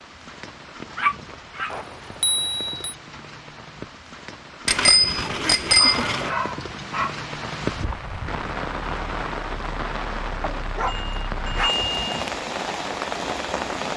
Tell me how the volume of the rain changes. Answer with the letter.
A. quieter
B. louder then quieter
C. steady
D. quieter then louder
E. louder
E.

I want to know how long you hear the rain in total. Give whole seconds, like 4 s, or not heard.
14 s.